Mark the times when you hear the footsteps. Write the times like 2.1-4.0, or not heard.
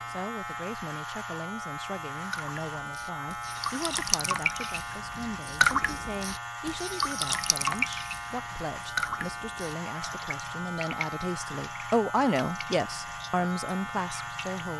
not heard.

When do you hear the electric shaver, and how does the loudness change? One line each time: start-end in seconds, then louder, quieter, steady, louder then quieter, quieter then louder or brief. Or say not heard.
0.0-14.7 steady.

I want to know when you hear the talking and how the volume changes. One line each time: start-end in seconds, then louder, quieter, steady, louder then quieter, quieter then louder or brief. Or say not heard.
0.1-14.7 louder.